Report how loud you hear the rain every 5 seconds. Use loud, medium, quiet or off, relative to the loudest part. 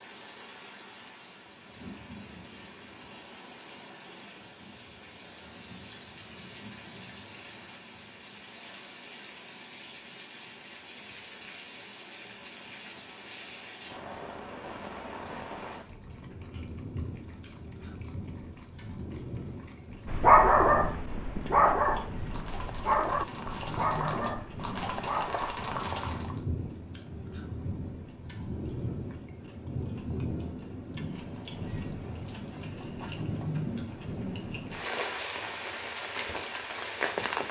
quiet, quiet, medium, medium, medium, medium, loud, loud.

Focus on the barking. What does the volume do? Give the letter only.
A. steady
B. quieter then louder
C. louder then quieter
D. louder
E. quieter
E.